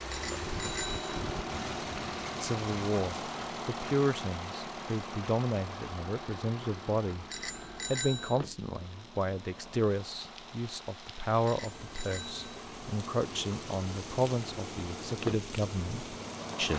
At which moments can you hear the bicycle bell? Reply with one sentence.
You can hear the bicycle bell from 0.1 to 1.1 s, from 7.3 to 8.4 s and from 11.4 to 12.5 s.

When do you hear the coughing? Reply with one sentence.
The coughing can't be heard in this clip.